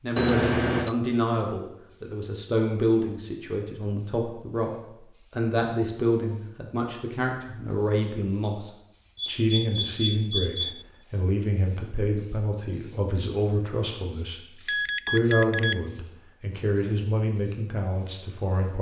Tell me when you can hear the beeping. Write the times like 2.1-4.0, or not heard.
0.1-0.9, 9.2-10.8, 14.5-15.8.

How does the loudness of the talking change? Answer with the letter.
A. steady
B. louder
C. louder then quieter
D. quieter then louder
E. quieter
A.